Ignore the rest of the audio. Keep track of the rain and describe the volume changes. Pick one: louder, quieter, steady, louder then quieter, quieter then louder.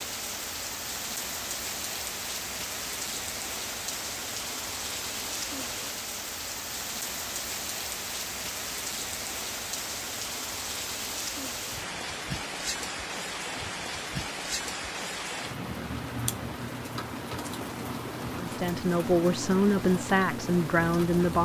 steady.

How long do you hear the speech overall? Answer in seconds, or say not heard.
3 s.